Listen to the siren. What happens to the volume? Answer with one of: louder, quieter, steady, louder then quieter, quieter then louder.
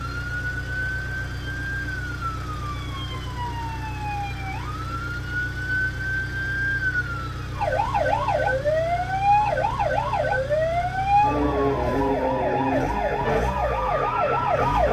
louder.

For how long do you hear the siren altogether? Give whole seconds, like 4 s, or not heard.
15 s.